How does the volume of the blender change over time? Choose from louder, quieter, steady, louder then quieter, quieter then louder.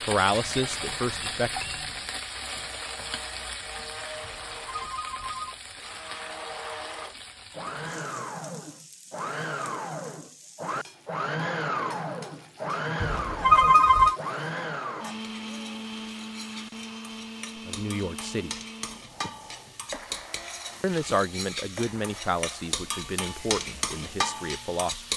louder then quieter.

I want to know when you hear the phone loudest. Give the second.
14 s.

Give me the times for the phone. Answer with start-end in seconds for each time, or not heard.
4.2-5.5, 13.0-14.2.